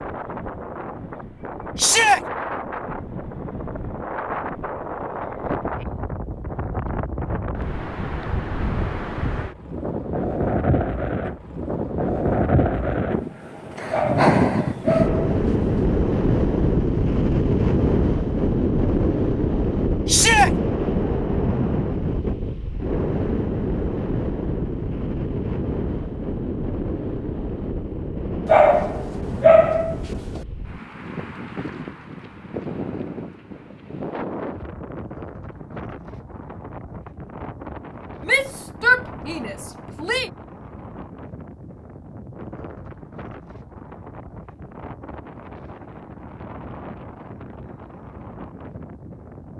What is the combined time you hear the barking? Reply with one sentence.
The barking can be heard for 4 seconds in total.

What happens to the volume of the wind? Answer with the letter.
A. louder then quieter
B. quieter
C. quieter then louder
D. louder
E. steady
A.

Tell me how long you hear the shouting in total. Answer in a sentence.
The shouting can be heard for 3 seconds in total.